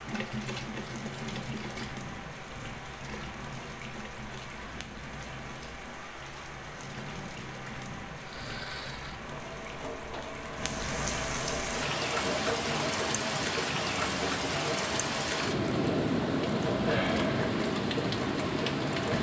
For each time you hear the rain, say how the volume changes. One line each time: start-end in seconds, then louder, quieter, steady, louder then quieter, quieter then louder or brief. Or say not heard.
0.0-19.1 louder.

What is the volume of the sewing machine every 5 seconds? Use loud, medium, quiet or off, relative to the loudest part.
medium, medium, loud, loud.